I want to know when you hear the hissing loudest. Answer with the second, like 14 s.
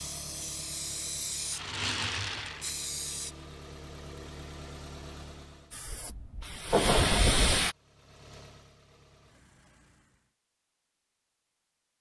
7 s.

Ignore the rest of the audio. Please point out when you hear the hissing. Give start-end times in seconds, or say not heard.
0.0-3.4, 5.7-7.8.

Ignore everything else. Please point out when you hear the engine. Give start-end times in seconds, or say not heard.
0.0-5.8, 7.5-10.3.